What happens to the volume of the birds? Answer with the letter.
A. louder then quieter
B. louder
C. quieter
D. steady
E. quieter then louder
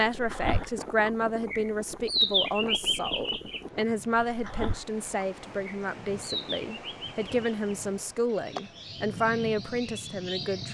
C.